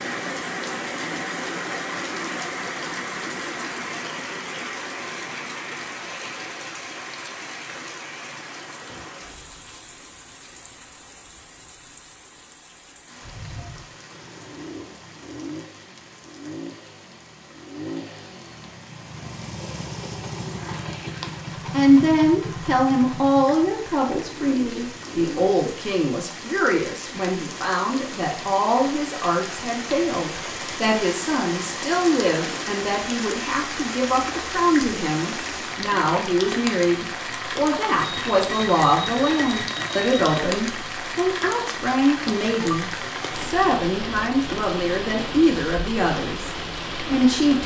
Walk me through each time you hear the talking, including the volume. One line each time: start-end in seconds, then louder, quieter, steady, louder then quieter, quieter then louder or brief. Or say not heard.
21.7-47.6 steady.